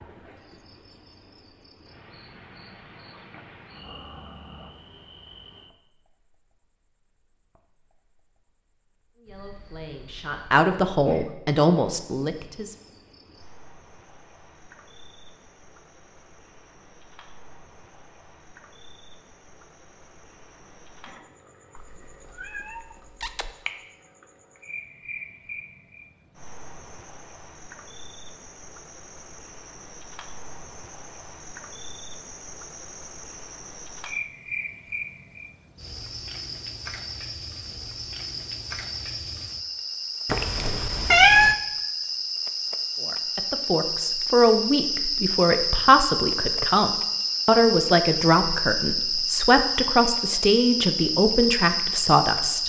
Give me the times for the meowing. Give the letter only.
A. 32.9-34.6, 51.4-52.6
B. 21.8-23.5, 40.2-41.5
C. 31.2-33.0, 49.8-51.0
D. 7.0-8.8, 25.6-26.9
B.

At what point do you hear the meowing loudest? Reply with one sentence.
The loudest moment of the meowing is at 41 seconds.